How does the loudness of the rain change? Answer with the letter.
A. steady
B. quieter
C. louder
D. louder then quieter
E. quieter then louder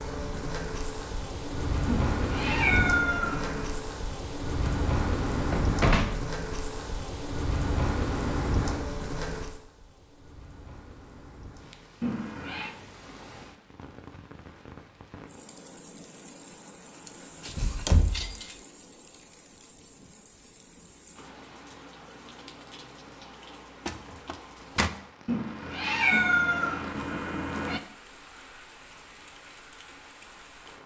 B.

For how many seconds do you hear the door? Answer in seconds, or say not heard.
4 s.